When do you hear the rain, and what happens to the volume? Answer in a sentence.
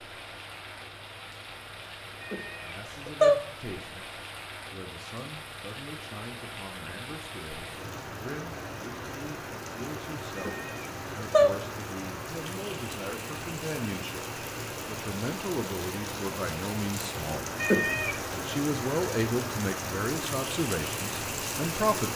You can hear the rain from 0.0 to 22.1 s, getting louder.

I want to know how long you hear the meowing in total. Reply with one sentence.
You can hear the meowing for 3 seconds altogether.